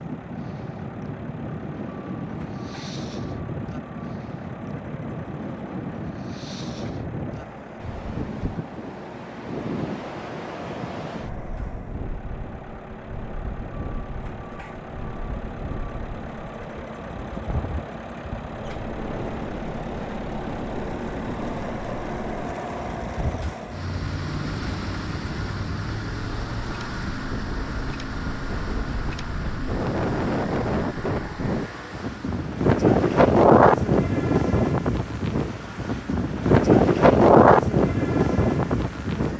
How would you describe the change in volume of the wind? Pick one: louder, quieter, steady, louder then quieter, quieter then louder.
louder.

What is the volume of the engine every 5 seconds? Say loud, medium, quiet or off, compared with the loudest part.
medium, medium, medium, loud, loud, loud, medium, medium.